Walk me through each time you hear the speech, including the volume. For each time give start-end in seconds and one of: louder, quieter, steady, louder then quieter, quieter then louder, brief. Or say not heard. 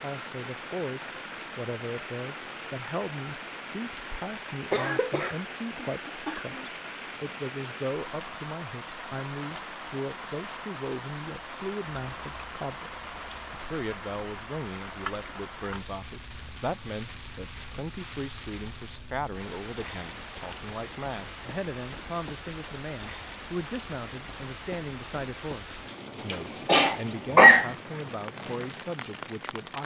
0.0-29.8 steady.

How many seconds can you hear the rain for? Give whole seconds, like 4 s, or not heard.
30 s.